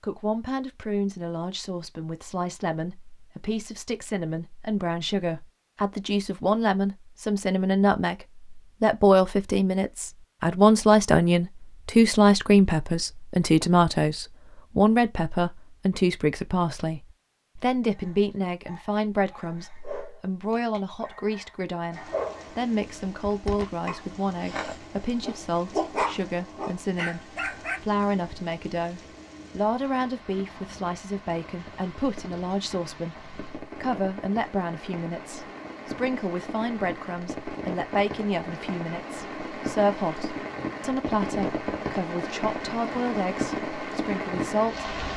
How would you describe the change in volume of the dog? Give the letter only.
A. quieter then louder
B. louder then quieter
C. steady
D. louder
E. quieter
D.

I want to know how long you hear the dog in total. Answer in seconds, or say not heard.
10 s.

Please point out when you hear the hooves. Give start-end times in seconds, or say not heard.
not heard.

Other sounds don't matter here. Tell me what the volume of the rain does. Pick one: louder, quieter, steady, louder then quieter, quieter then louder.
louder.